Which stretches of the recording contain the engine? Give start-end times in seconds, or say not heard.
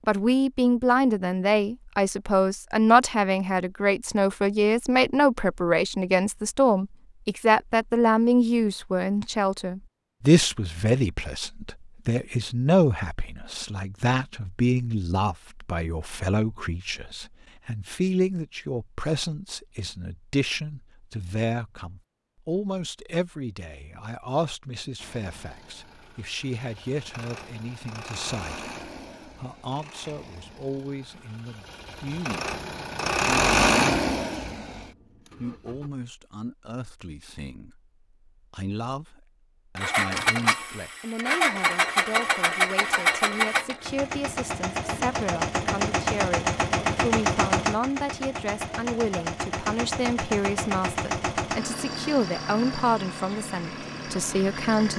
24.9-35.9, 39.8-54.9.